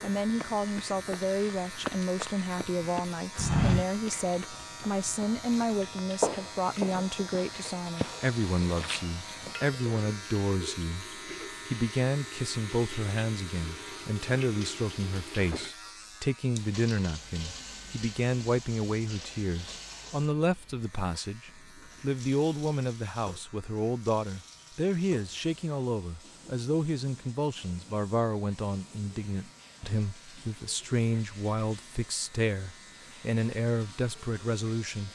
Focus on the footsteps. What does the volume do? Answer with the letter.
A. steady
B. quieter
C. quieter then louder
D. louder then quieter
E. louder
D.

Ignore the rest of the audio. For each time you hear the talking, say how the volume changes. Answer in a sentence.
You can hear the talking from 0.0 to 35.0 s, at a steady volume.